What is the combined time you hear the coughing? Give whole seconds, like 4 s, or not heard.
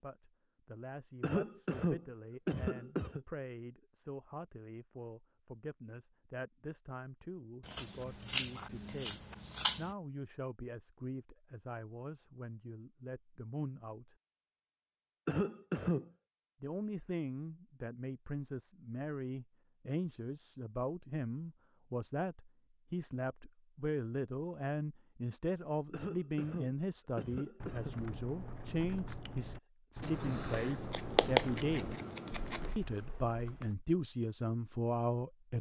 5 s.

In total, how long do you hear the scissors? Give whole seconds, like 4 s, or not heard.
5 s.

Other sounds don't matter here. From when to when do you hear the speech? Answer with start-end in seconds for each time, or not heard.
0.0-14.2, 16.6-31.9, 32.8-35.5.